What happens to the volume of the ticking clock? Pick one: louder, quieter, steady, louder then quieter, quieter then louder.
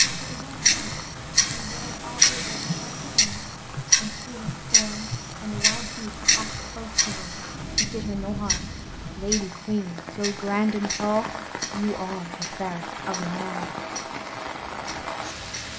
quieter.